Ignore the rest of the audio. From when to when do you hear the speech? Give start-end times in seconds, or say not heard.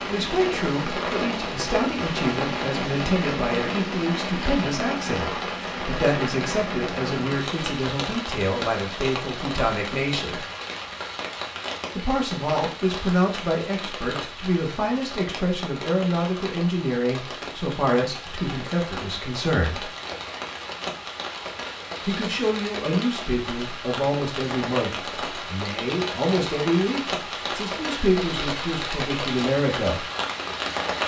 0.1-10.4, 11.9-19.9, 22.1-30.1.